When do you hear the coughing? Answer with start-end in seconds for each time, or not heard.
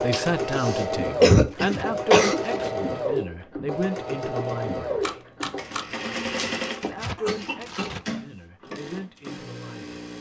0.1-2.4, 7.2-8.0.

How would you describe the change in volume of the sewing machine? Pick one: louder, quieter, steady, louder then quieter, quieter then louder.
quieter.